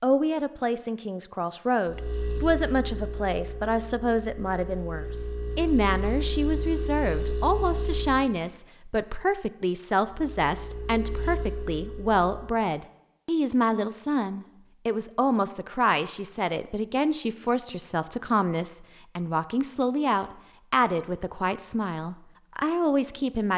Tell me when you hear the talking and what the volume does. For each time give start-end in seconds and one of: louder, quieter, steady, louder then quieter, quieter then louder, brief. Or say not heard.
0.0-23.5 steady.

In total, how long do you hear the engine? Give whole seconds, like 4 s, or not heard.
9 s.